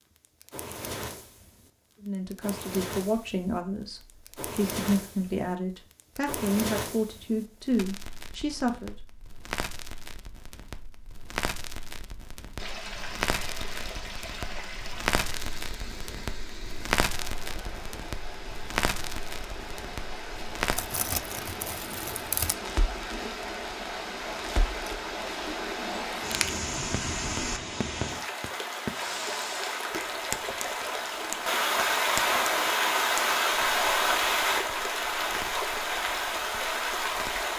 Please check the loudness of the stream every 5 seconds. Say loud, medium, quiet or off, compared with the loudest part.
off, off, quiet, quiet, medium, medium, loud, loud.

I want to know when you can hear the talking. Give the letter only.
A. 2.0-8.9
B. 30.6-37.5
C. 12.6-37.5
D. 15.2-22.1
A.